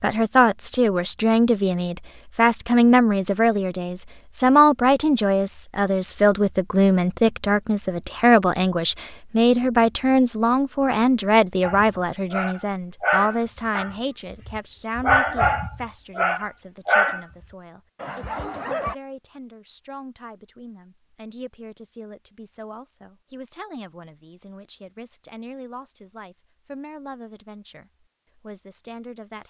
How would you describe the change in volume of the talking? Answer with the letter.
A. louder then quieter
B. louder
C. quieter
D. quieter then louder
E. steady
C.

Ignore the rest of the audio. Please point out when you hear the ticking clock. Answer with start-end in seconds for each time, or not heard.
not heard.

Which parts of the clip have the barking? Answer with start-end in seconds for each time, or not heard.
11.6-17.2, 18.0-18.9.